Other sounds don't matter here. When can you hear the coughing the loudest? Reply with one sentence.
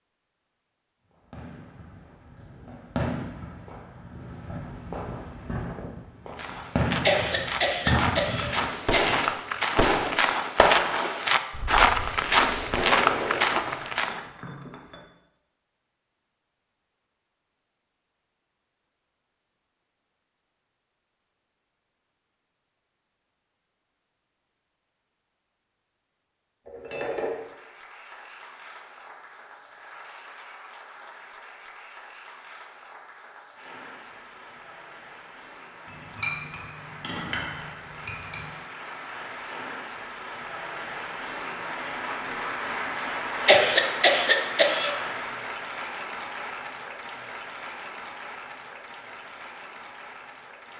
The loudest moment of the coughing is at 44 seconds.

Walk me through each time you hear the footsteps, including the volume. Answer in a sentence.
You can hear the footsteps from 6.3 to 14.2 s, getting louder.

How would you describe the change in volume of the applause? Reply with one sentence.
The loudness of the applause goes up, then down.